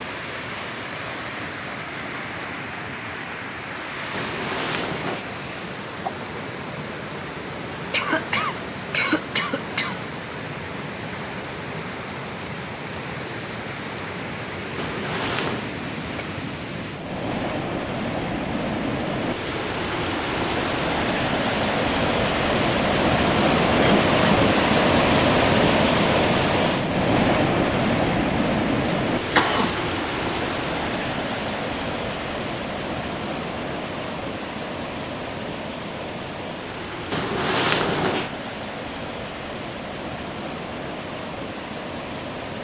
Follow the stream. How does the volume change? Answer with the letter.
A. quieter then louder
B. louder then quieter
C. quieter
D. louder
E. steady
B.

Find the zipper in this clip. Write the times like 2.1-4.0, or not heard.
4.1-5.2, 14.8-15.7, 37.1-38.3.